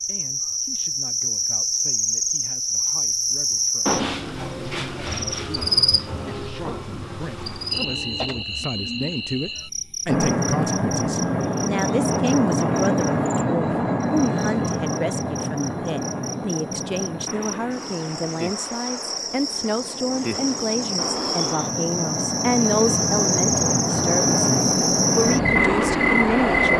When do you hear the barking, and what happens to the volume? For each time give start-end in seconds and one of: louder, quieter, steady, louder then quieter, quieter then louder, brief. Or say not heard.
not heard.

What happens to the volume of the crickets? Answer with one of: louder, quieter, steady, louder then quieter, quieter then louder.
quieter then louder.